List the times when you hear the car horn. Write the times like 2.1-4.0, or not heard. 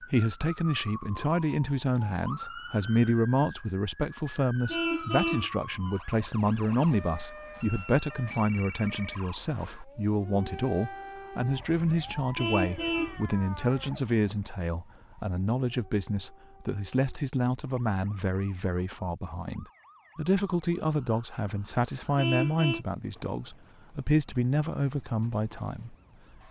4.7-5.5, 12.3-13.2, 22.1-22.9.